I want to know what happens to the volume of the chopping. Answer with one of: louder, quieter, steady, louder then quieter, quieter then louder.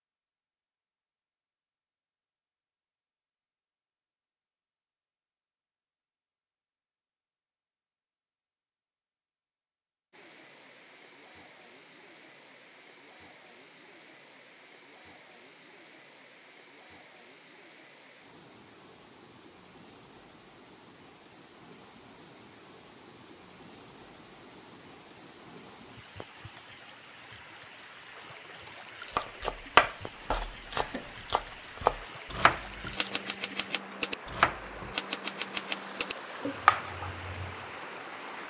quieter then louder.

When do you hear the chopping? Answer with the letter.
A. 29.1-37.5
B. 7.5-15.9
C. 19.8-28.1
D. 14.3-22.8
A.